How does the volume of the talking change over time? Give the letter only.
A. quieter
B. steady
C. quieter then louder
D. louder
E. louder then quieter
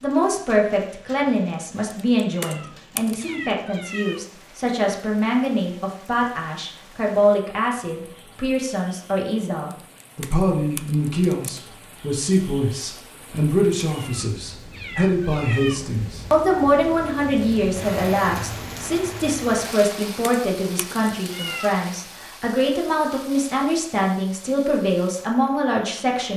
B.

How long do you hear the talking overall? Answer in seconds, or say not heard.
26 s.